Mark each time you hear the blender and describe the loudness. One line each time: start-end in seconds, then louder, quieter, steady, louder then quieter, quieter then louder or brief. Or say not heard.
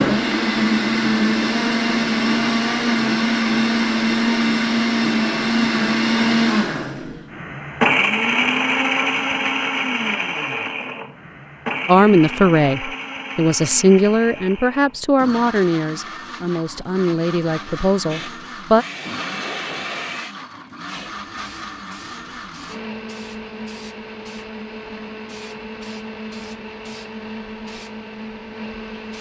0.0-29.1 quieter.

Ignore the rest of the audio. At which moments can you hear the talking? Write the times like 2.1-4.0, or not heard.
11.8-18.9.